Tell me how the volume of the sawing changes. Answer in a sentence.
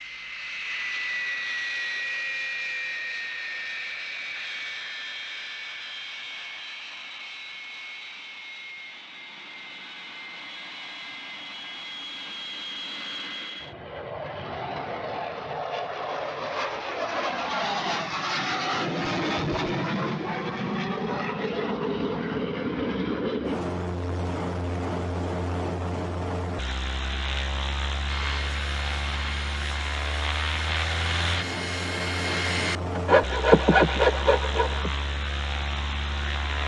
The volume of the sawing goes up.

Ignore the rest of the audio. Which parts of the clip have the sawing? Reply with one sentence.
You can hear the sawing from 28.1 to 35.0 s.